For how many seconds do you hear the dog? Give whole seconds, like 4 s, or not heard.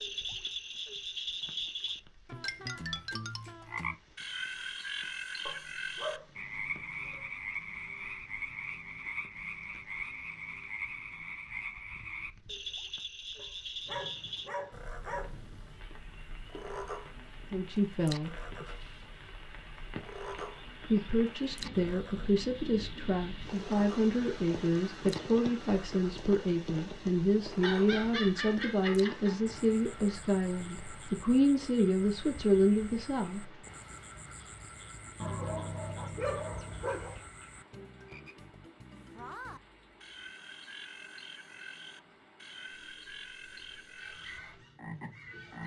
8 s.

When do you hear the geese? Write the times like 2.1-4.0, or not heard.
43.9-45.6.